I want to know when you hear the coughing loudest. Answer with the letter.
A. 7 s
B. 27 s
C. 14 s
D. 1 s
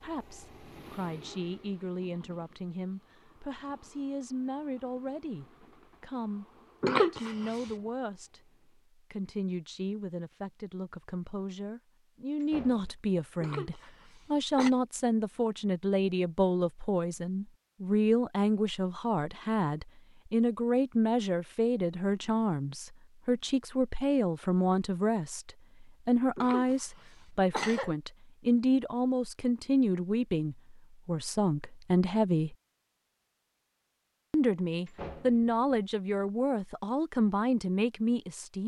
A.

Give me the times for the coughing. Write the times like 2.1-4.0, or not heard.
6.8-7.7, 13.4-14.7, 26.4-27.9.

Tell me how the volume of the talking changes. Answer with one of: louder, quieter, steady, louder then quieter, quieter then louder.
louder.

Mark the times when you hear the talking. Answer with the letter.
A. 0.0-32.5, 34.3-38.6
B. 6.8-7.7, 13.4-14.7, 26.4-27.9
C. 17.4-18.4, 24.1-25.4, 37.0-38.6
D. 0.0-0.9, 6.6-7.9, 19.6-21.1
A.